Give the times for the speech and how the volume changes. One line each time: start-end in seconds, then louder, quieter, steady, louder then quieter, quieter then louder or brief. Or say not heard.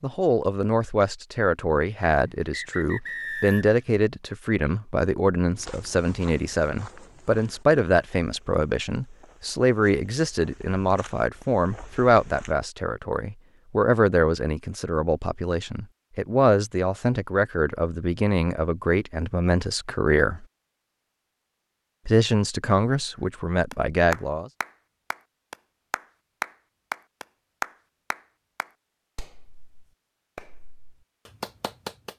0.0-20.4 steady
22.1-24.5 brief.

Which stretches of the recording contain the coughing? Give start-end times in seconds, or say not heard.
not heard.